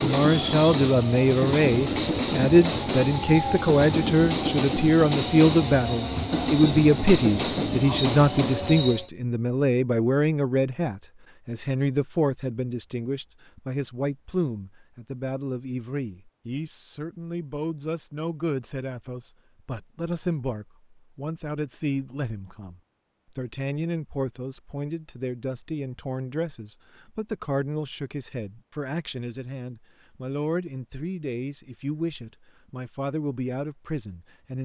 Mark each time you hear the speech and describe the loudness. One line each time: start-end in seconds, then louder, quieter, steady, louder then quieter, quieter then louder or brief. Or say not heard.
0.0-34.6 quieter.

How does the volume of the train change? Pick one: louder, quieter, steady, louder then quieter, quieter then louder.
steady.